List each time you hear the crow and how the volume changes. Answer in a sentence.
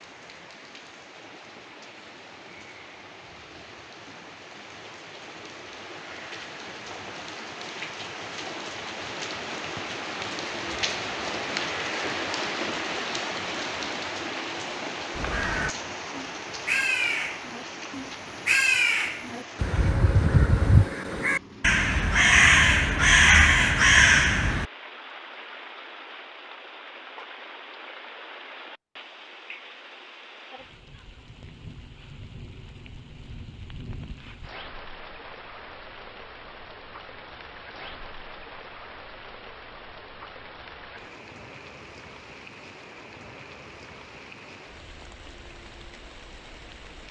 The crow can be heard from 15.1 to 24.6 s, getting louder.